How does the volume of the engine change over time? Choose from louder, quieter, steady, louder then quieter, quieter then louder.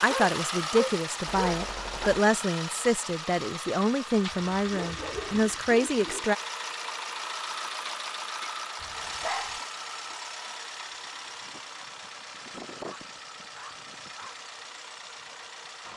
quieter.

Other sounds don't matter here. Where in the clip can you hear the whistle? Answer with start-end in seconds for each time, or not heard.
not heard.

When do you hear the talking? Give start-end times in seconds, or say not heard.
0.0-6.3.